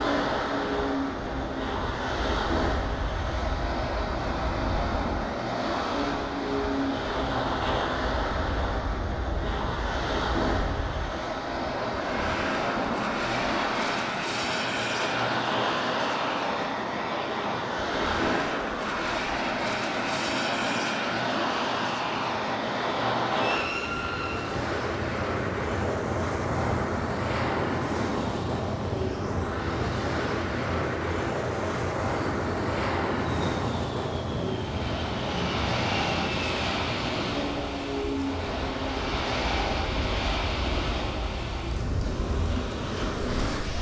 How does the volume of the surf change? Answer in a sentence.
The volume of the surf stays about the same.